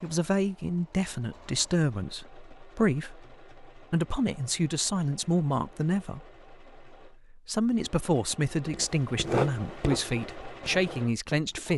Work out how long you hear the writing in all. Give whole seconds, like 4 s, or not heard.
3 s.